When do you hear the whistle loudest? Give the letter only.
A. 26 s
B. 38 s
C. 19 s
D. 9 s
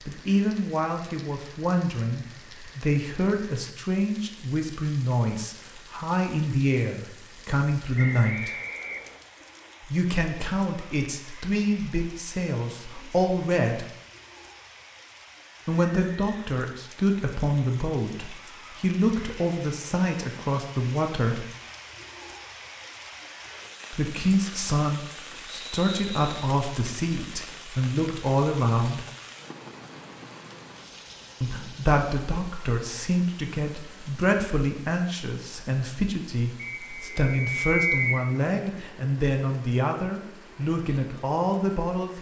B.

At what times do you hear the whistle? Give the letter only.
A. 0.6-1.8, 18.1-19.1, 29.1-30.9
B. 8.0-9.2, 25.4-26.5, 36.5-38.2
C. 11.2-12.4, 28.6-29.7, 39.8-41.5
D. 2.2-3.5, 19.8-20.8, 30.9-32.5
B.